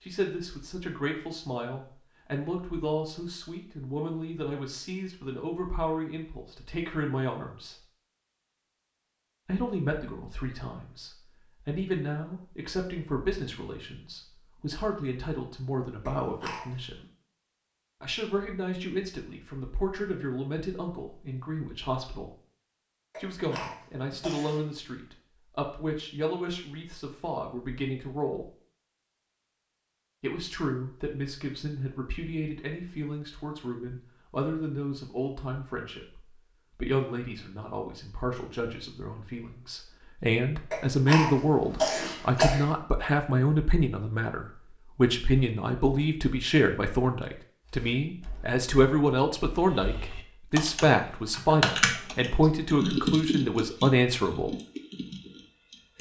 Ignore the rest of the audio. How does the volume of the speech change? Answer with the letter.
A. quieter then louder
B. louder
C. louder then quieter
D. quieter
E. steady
B.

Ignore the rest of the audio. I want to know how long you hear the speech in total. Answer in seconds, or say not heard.
49 s.